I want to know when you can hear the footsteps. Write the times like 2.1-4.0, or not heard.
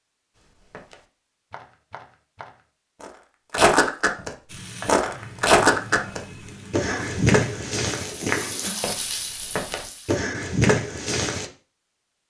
0.3-11.4.